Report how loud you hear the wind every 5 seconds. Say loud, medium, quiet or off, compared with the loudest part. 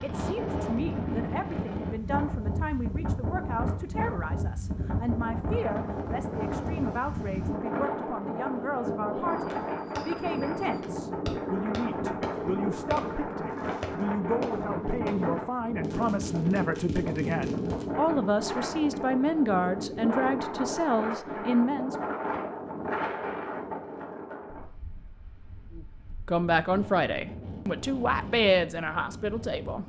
loud, loud, loud, loud, loud, medium.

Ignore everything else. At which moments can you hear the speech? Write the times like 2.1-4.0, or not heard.
0.0-21.9, 25.8-29.8.